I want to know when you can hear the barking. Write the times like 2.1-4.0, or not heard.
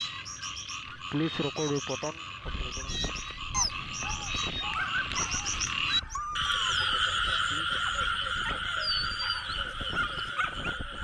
3.5-10.8.